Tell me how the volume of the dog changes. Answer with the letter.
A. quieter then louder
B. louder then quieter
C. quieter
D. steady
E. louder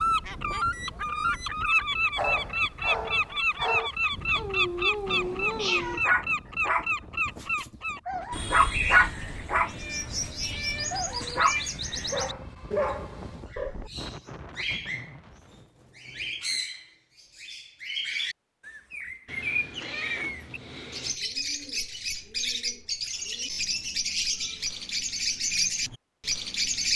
B.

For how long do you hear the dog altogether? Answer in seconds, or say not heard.
12 s.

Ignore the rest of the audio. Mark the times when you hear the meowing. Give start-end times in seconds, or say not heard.
5.0-6.0, 9.6-12.1, 19.2-21.2.